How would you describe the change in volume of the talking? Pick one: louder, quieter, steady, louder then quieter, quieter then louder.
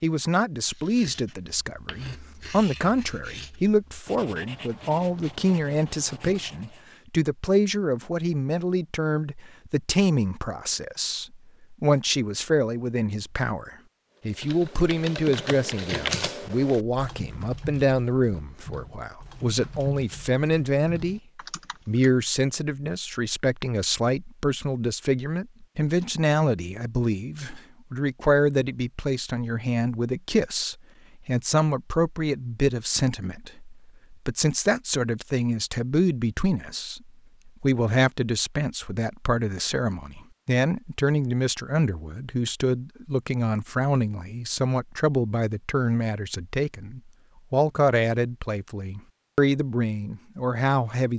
steady.